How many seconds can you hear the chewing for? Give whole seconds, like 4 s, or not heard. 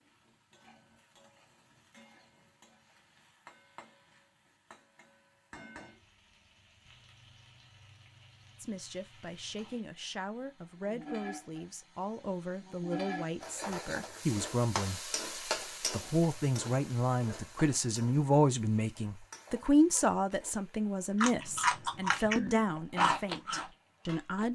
3 s.